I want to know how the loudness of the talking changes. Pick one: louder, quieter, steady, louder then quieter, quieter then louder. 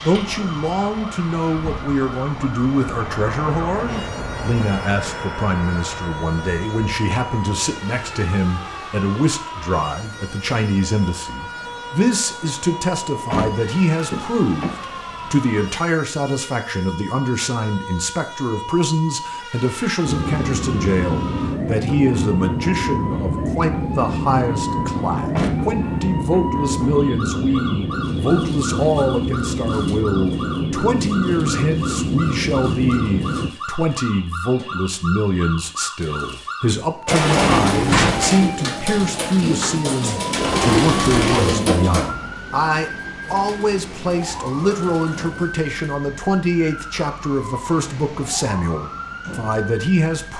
steady.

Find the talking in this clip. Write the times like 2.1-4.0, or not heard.
0.0-50.3.